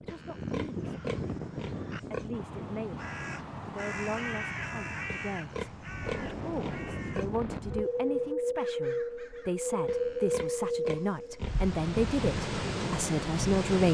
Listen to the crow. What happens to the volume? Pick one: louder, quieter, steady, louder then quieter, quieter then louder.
louder then quieter.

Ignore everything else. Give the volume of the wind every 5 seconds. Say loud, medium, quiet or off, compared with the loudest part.
medium, loud, loud.